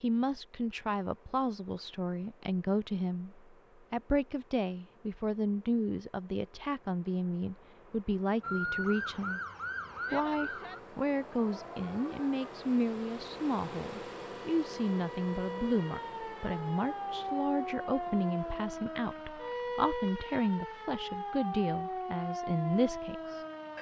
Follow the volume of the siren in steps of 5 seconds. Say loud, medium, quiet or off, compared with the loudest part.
off, loud, medium, loud, loud.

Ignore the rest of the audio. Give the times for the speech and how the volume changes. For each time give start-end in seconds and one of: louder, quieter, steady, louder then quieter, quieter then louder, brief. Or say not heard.
0.0-9.4 steady
10.1-23.4 steady.